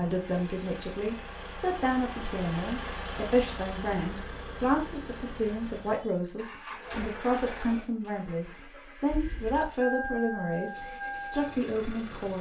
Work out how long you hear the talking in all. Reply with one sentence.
You can hear the talking for 12 seconds altogether.